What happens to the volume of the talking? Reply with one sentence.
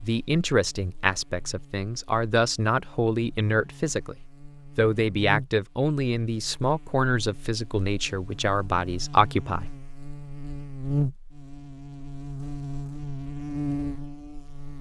The volume of the talking stays about the same.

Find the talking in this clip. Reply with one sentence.
You can hear the talking from 0.0 to 4.2 s and from 4.8 to 9.7 s.